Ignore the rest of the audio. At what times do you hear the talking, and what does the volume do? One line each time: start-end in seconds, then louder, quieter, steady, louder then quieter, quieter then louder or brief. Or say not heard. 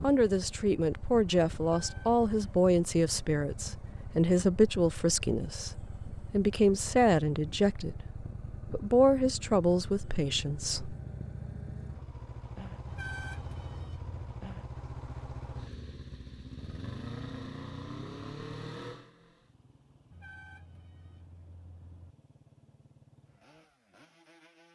0.0-10.9 steady.